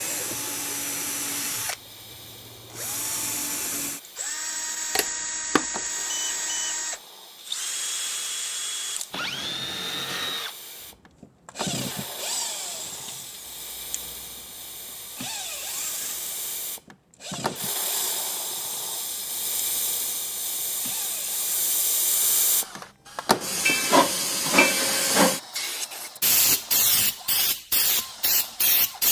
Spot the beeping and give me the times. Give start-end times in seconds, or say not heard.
5.0-6.8.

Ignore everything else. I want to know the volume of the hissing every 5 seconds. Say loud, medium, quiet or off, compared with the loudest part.
quiet, quiet, quiet, medium, loud, loud.